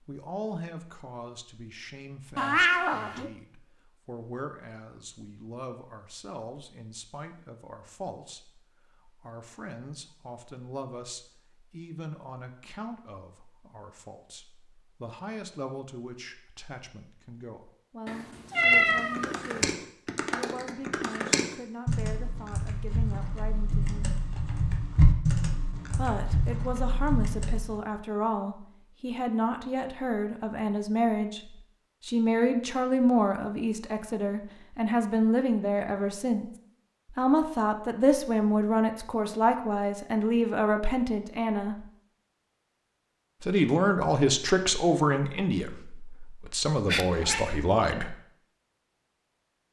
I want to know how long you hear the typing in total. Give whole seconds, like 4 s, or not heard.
9 s.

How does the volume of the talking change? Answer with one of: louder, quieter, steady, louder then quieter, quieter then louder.
louder.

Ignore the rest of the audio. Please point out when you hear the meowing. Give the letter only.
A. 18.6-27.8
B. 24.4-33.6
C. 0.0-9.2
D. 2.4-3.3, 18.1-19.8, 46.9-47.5
D.